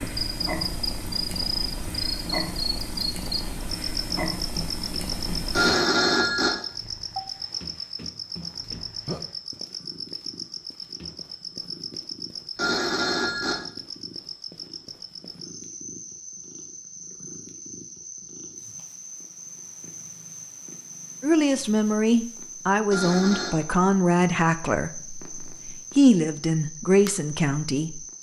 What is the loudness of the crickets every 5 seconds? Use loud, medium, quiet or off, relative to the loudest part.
loud, loud, medium, medium, medium, medium.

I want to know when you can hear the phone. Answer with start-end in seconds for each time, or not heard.
5.5-6.5, 12.6-13.6, 22.9-23.6.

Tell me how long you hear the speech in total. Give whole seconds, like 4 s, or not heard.
7 s.